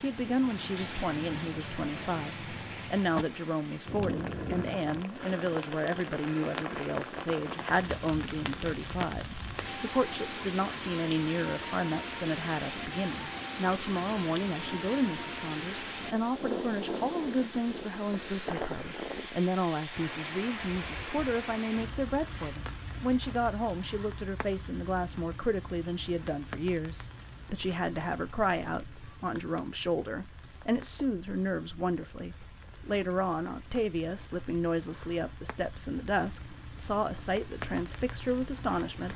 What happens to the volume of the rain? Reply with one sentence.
The loudness of the rain goes down.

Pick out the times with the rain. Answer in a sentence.
You can hear the rain from 0.0 to 39.1 s.